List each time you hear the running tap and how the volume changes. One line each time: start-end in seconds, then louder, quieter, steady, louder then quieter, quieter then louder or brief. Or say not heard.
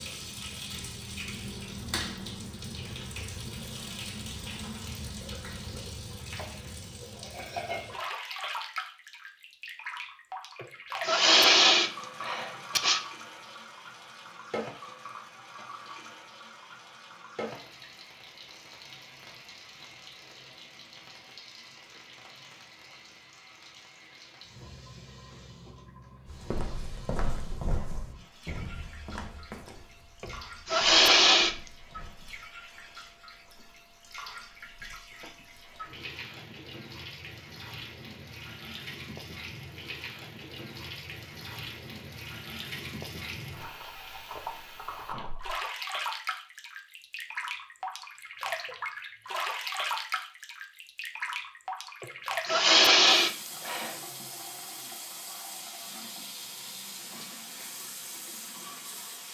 0.0-59.2 quieter then louder.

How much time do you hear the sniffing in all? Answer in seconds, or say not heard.
6 s.